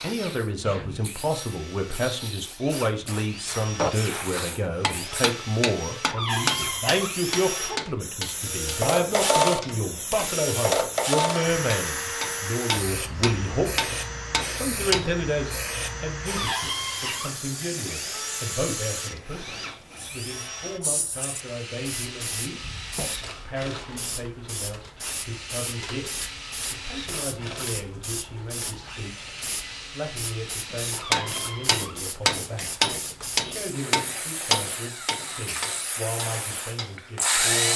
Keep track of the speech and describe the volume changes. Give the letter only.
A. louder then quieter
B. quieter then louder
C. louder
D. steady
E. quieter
E.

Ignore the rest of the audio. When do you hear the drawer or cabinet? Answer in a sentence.
The drawer or cabinet can be heard from 6.0 to 7.2 s, from 16.2 to 17.4 s and from 30.9 to 32.0 s.